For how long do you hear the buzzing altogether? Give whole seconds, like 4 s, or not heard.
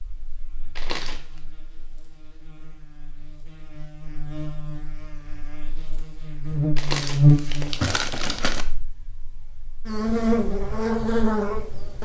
12 s.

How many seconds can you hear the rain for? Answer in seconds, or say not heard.
not heard.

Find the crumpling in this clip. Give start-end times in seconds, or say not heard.
0.8-1.4, 6.8-8.7.